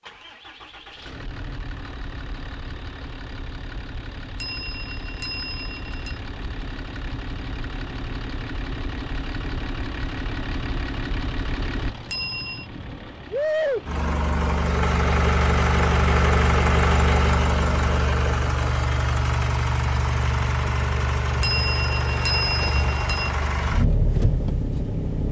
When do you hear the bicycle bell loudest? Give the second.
22 s.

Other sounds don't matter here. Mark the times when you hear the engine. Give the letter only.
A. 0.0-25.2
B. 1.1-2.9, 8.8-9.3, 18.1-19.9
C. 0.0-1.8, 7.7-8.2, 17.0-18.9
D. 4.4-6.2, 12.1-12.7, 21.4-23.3
A.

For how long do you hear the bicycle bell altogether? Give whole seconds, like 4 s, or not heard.
4 s.